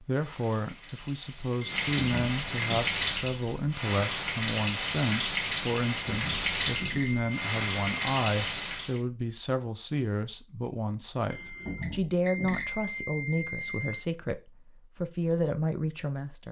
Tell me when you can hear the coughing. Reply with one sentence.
The coughing can't be heard in this clip.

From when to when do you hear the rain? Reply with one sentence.
You can hear the rain from 0.0 to 9.0 s.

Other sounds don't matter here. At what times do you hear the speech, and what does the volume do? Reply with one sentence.
You can hear the speech from 0.0 to 16.4 s, at a steady volume.